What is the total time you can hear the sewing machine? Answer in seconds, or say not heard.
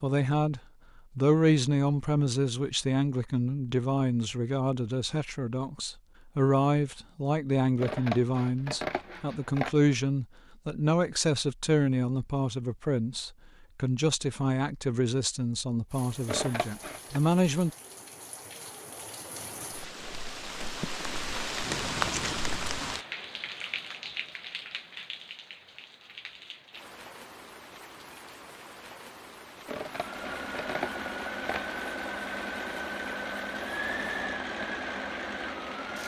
6 s.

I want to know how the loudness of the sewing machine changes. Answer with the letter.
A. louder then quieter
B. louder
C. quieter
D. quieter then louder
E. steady
E.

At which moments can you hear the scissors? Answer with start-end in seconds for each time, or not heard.
7.8-9.8, 16.2-17.2, 29.6-31.8.